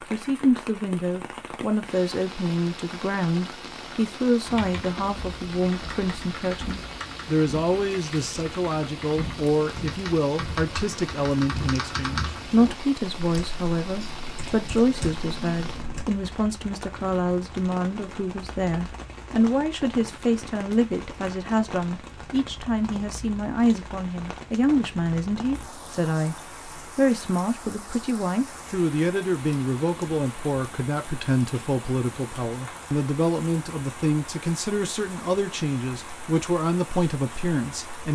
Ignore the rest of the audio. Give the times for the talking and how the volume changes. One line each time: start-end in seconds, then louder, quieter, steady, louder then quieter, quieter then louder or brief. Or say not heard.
0.1-38.1 steady.